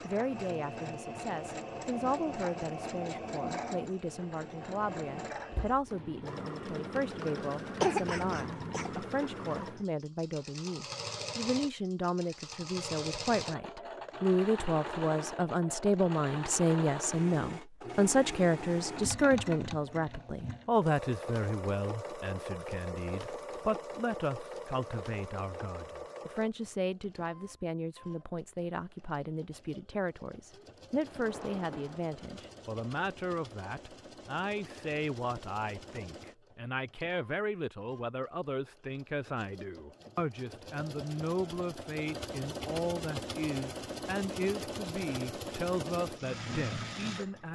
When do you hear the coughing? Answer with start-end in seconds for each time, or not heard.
7.8-9.0.